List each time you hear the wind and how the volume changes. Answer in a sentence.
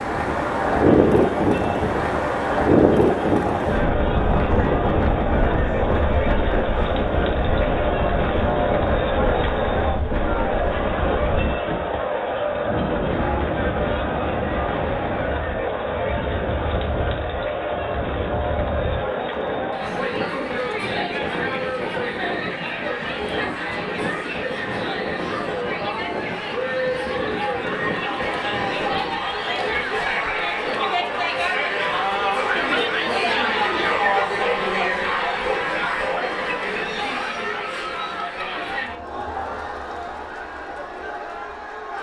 The wind can be heard from 0.0 to 29.2 s, getting quieter.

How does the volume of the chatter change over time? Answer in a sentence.
The volume of the chatter stays about the same.